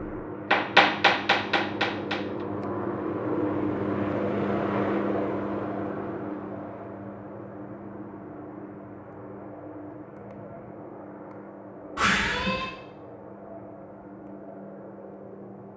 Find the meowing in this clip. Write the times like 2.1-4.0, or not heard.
11.9-12.7.